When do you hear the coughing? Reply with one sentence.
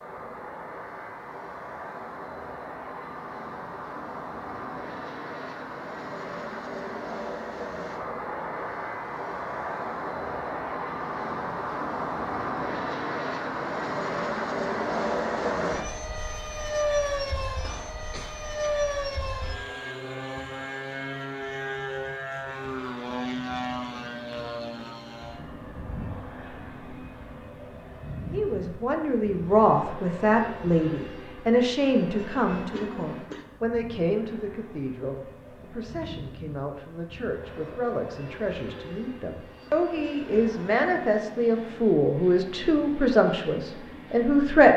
You can hear the coughing from 17.6 to 18.9 s and from 32.5 to 33.5 s.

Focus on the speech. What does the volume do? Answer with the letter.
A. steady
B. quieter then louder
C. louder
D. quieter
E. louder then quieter
B.